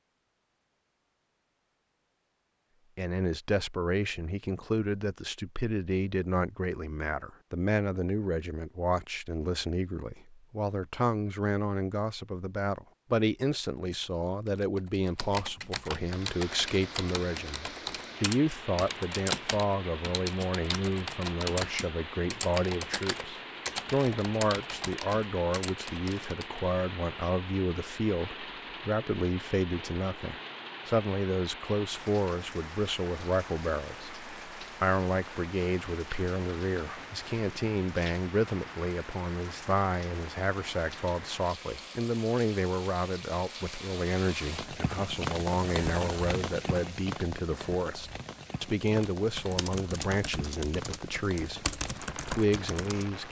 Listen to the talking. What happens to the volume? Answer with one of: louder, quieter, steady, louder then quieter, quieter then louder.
steady.